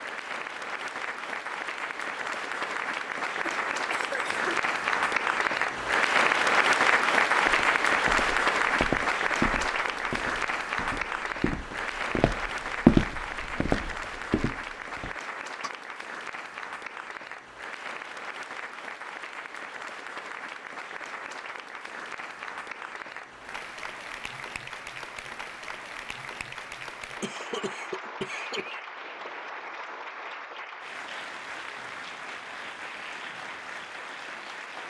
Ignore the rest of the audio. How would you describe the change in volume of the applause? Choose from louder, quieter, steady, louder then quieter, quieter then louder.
quieter.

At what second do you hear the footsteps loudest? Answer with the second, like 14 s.
13 s.